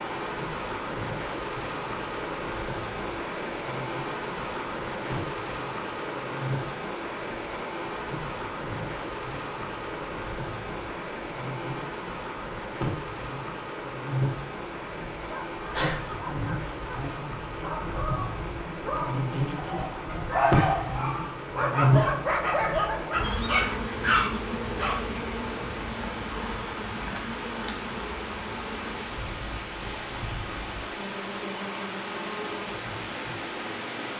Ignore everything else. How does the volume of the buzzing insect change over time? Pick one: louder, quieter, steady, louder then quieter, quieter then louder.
louder then quieter.